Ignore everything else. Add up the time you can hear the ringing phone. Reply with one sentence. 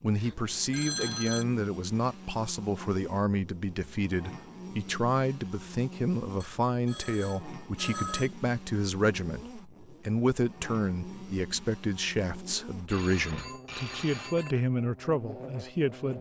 You can hear the ringing phone for 5 seconds altogether.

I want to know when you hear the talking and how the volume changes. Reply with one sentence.
The talking can be heard from 0.0 to 16.1 s, at a steady volume.